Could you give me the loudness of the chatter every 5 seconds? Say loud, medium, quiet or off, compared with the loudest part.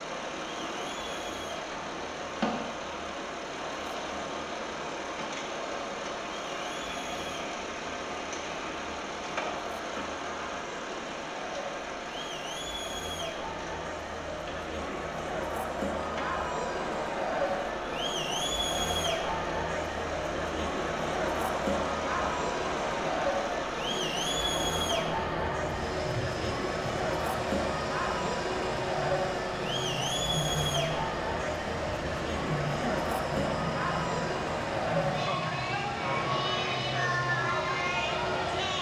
quiet, quiet, medium, loud, loud, loud, loud, loud.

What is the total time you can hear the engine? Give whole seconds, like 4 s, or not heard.
39 s.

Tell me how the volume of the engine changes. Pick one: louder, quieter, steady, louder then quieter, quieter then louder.
steady.